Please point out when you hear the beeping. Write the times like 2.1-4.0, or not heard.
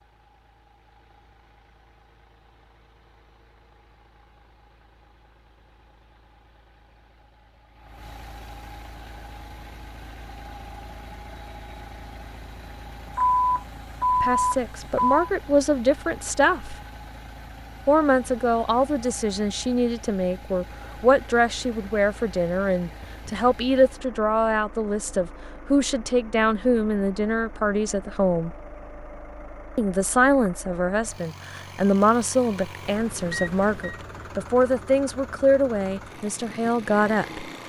13.2-15.2, 32.9-34.0.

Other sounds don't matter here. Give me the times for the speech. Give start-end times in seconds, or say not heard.
14.2-16.8, 17.9-28.6, 29.8-37.5.